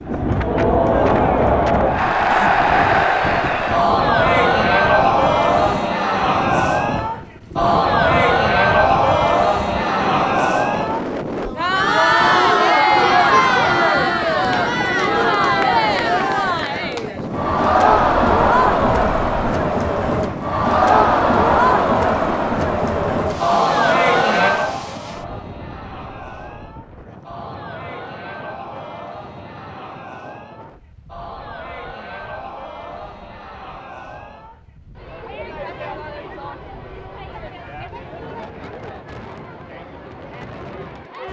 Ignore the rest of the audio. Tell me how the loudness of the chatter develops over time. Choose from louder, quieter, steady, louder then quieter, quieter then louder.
quieter.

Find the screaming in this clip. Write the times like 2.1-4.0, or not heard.
12.7-13.9.